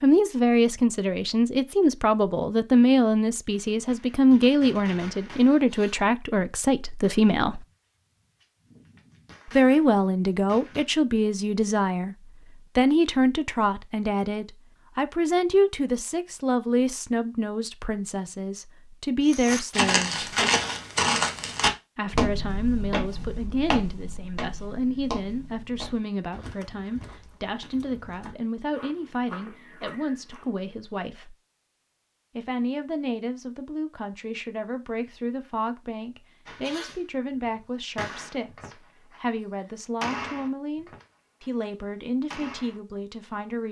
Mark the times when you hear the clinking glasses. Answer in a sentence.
You can't hear the clinking glasses here.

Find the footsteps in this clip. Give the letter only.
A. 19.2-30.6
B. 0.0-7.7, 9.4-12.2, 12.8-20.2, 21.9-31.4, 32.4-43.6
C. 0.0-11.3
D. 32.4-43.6
A.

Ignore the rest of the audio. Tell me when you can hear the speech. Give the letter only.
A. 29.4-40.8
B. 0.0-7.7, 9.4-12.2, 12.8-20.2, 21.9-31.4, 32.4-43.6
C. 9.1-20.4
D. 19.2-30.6
B.